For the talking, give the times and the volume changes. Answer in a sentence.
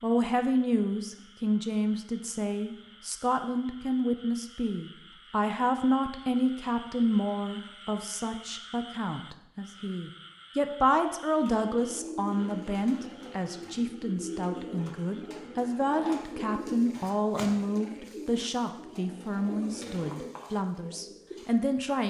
The talking can be heard from 0.0 to 22.0 s, at a steady volume.